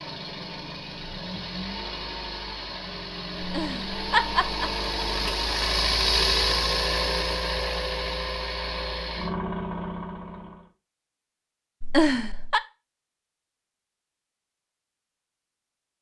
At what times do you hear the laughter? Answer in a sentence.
You can hear the laughter from 3.4 to 4.7 s and from 11.8 to 12.6 s.